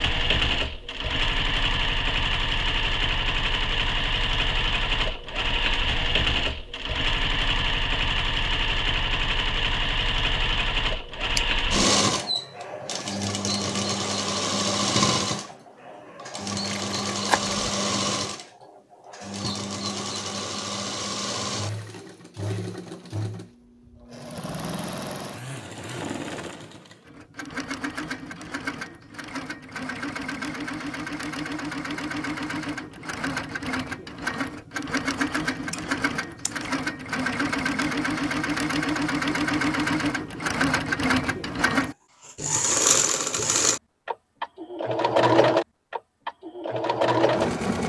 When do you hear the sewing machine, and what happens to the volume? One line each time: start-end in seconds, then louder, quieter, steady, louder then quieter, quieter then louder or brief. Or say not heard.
0.0-47.8 quieter then louder.